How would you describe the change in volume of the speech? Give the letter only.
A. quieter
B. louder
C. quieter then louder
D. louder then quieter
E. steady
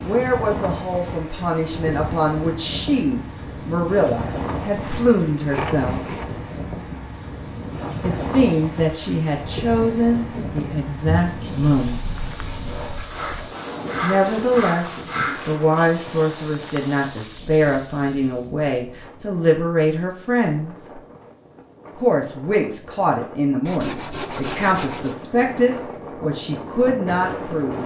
E.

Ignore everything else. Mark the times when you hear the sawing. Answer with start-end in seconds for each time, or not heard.
4.8-6.3, 13.1-15.7, 23.6-25.1.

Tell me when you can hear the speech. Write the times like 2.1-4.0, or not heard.
0.0-6.0, 8.0-12.0, 14.0-21.0, 21.9-27.8.